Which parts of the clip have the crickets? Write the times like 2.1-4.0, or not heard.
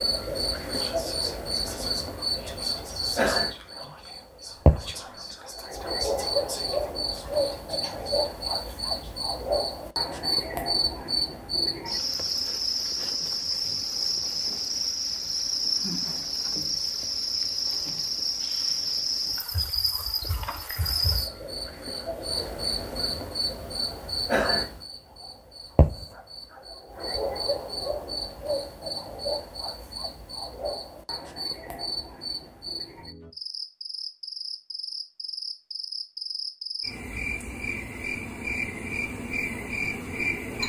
0.0-40.6.